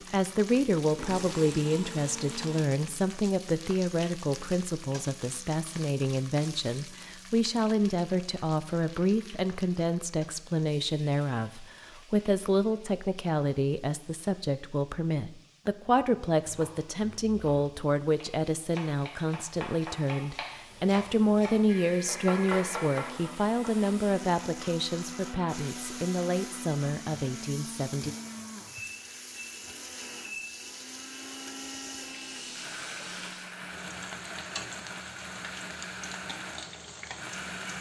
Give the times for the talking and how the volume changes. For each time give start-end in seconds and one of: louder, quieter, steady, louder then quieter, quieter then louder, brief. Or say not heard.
0.1-28.1 steady.